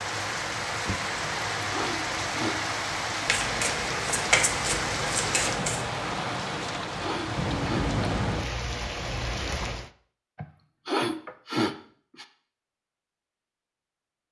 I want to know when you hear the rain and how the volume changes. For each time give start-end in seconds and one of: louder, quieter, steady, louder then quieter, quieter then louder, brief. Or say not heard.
0.0-9.9 steady.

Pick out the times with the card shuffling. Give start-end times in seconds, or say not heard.
3.2-5.9.